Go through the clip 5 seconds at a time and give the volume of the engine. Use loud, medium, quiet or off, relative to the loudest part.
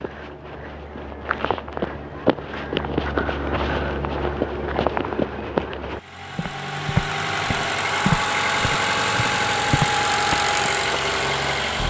off, loud, loud.